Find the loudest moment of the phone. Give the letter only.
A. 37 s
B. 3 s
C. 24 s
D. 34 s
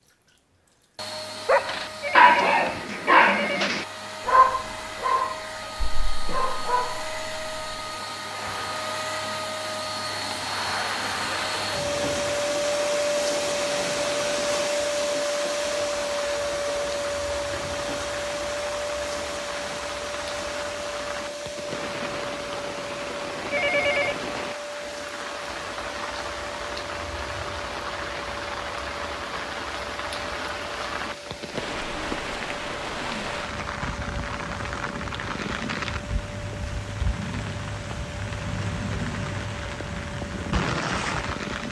C.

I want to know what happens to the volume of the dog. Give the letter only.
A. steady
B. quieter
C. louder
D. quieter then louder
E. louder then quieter
B.